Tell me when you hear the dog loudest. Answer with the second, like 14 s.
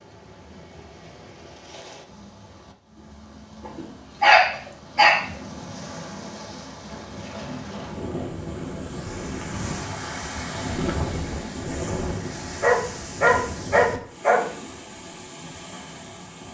4 s.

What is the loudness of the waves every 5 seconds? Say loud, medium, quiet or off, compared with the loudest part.
quiet, loud, loud, medium.